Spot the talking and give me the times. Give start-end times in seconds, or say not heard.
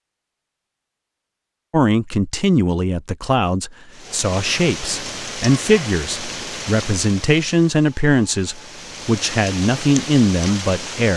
1.7-11.1.